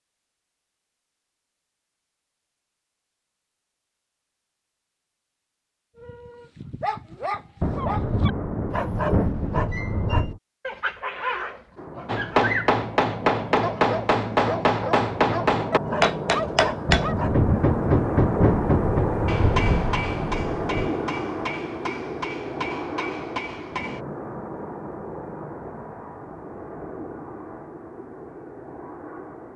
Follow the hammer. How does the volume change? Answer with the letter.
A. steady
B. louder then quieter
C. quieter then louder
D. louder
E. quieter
E.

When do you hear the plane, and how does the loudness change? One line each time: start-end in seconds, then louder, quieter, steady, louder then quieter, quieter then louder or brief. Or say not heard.
11.8-29.5 louder then quieter.